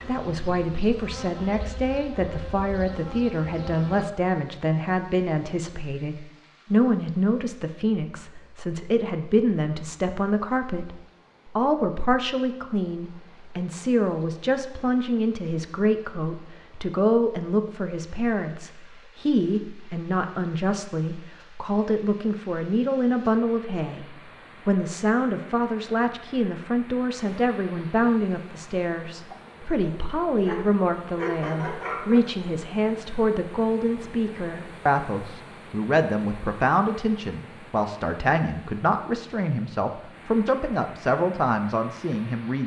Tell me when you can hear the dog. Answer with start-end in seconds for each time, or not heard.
30.4-32.2.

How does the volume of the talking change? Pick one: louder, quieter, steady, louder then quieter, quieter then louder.
steady.